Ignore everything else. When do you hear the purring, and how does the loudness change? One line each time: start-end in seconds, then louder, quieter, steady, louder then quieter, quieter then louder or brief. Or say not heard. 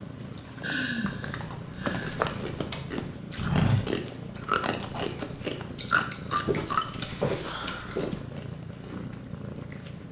0.0-10.0 steady.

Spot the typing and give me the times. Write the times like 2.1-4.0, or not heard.
1.1-3.1, 6.7-8.3.